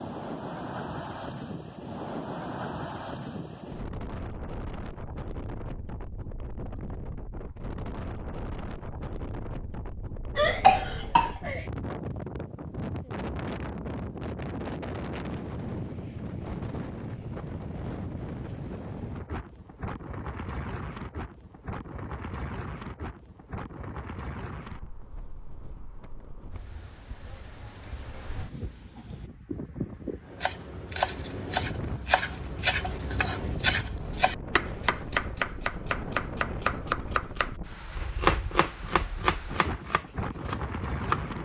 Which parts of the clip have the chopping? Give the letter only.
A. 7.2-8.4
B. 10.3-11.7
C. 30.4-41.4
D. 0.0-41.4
C.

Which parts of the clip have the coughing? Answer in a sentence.
The coughing can be heard from 10.3 to 11.7 s.